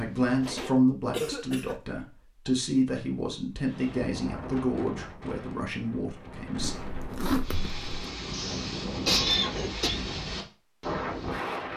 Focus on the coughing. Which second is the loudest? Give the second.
9 s.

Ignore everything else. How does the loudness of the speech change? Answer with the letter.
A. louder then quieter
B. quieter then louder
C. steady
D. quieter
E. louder
D.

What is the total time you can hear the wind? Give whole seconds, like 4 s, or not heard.
8 s.